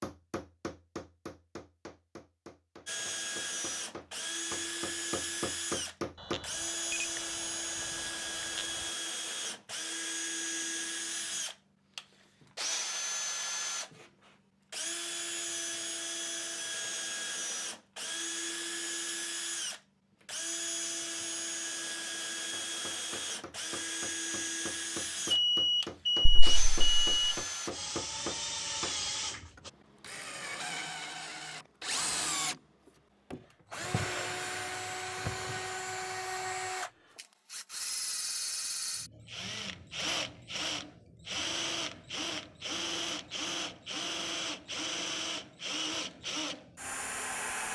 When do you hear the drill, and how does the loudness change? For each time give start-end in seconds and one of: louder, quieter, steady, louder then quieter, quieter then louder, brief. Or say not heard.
2.9-47.7 steady.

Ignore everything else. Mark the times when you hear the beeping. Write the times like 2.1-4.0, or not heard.
6.2-8.9, 25.3-27.4.